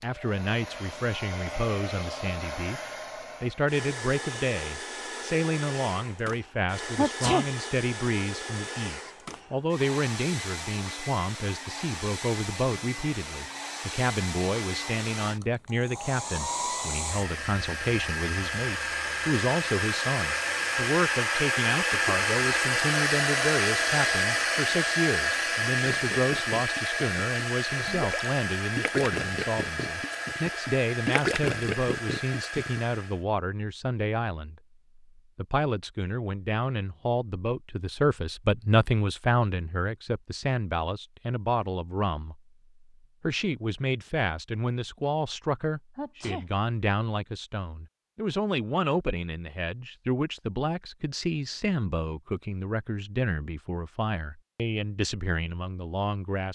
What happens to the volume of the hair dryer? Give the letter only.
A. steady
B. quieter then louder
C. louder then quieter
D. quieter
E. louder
C.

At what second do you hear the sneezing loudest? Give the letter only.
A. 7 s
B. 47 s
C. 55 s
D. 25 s
A.